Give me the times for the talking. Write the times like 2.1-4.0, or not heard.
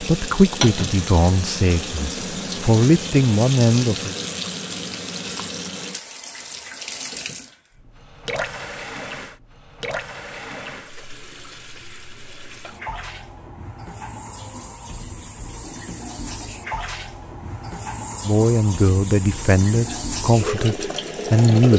0.0-4.2, 18.2-21.7.